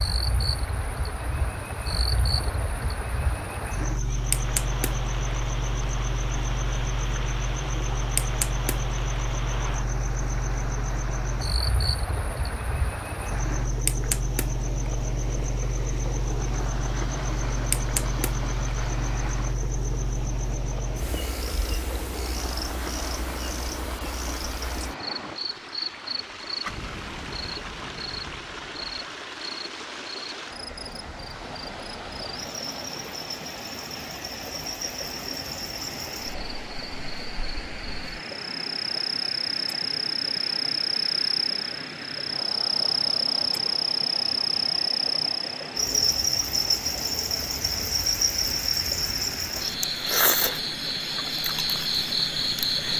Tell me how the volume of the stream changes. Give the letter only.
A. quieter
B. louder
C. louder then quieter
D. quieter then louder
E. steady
E.